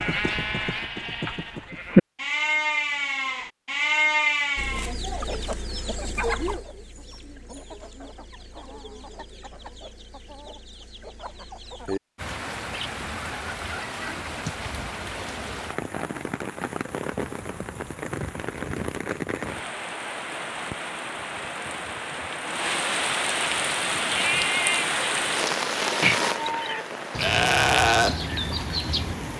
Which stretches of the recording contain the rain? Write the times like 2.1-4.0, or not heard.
12.2-29.3.